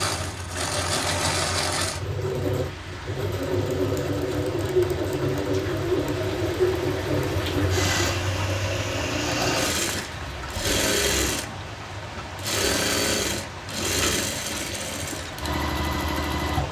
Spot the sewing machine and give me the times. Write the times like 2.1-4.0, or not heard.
0.0-16.6.